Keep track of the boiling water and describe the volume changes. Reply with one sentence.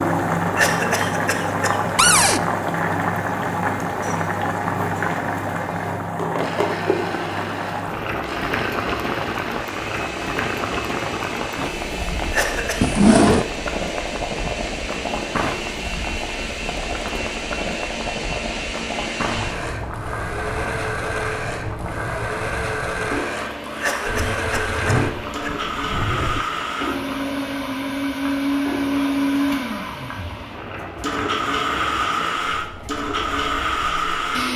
The loudness of the boiling water goes down.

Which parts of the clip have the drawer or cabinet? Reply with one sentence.
You can hear the drawer or cabinet from 1.9 to 2.4 s, from 12.8 to 13.4 s and from 24.1 to 26.4 s.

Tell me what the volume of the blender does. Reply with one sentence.
The loudness of the blender goes up.